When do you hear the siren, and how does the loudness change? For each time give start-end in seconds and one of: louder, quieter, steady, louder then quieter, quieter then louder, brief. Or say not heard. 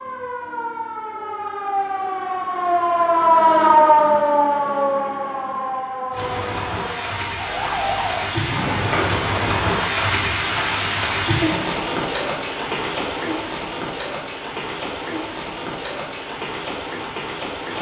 0.0-8.2 louder then quieter.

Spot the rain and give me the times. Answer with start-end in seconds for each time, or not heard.
6.1-17.7.